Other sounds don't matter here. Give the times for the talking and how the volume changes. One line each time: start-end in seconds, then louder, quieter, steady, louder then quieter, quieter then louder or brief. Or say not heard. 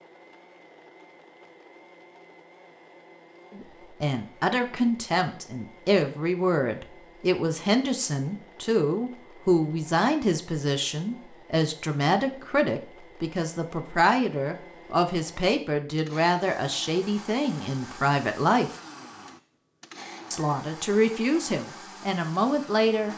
3.5-18.8 steady
20.3-23.1 brief.